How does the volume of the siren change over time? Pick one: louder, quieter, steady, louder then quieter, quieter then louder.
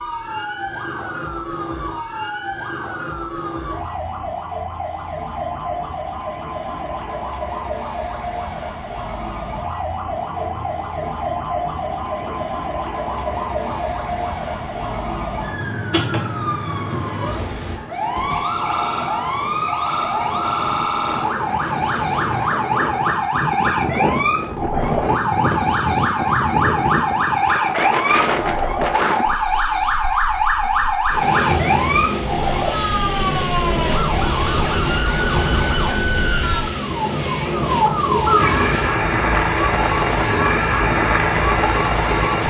louder.